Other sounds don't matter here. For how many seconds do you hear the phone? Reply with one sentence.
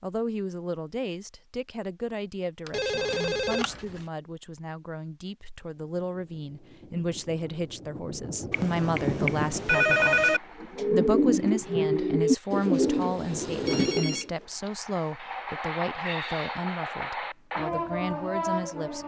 The phone can be heard for 4 seconds in total.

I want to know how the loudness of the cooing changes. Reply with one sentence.
The loudness of the cooing stays about the same.